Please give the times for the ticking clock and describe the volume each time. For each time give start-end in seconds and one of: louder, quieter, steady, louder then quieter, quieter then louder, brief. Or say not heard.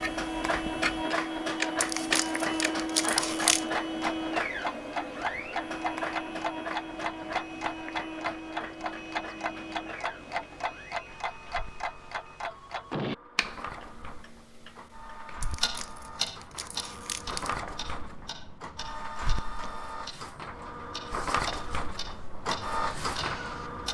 0.0-23.8 quieter.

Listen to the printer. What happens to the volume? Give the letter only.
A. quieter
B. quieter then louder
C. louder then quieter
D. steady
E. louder
B.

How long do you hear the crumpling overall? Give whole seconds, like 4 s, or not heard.
4 s.